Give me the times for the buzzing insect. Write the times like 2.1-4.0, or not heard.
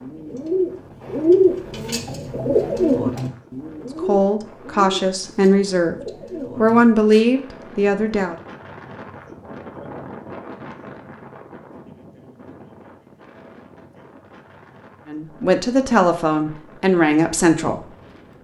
not heard.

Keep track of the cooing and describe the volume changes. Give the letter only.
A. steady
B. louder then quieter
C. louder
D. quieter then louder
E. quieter
E.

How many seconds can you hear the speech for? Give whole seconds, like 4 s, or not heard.
7 s.